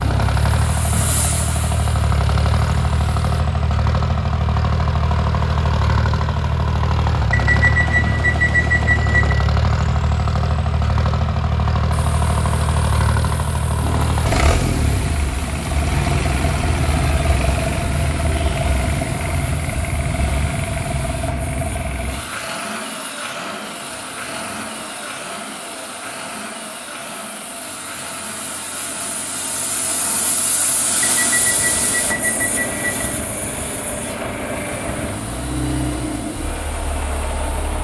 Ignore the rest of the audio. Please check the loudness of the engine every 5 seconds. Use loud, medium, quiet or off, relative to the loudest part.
loud, loud, loud, loud, medium, quiet, medium, medium.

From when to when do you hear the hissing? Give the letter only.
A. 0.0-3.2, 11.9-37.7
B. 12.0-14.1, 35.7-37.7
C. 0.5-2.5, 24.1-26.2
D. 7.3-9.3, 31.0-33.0
A.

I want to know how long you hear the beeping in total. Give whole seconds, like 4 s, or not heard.
4 s.